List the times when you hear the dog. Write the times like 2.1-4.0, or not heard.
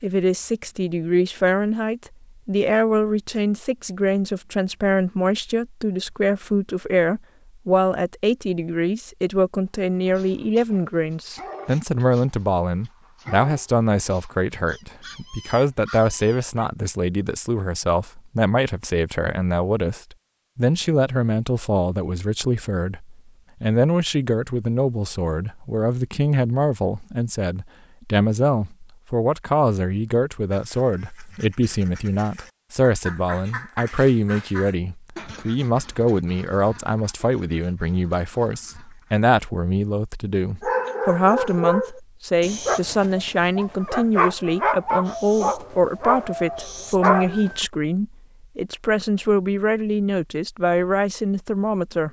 10.0-16.7, 40.6-47.6.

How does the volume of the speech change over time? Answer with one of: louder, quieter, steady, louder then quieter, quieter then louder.
steady.